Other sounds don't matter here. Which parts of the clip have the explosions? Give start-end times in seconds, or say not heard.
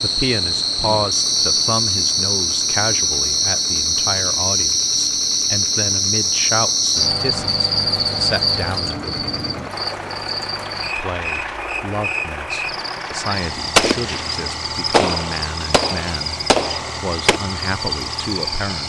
13.8-17.4.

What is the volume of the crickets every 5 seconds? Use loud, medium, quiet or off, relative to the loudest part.
loud, loud, medium, medium.